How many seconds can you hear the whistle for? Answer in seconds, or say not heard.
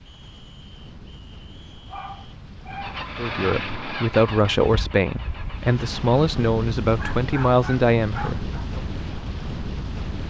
2 s.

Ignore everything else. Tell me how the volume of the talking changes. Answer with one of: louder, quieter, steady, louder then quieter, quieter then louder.
steady.